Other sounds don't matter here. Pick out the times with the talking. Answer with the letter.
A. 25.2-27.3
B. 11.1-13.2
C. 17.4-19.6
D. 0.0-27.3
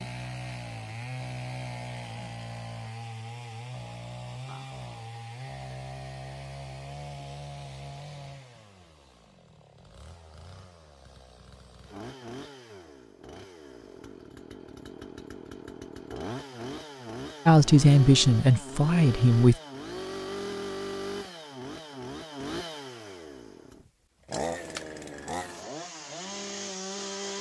C.